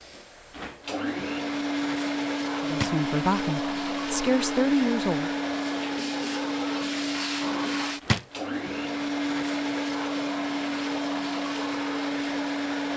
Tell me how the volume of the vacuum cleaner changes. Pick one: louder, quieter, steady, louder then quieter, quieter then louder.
steady.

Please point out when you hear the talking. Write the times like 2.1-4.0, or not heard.
2.6-5.3.